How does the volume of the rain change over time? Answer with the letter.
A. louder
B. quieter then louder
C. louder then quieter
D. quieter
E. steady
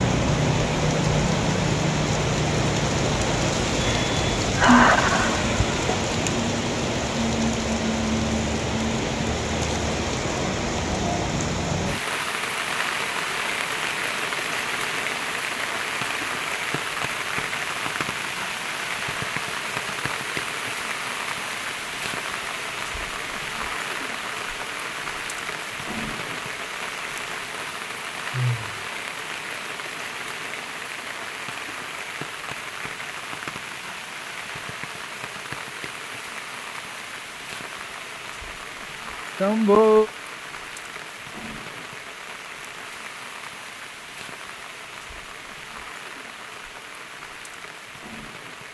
D.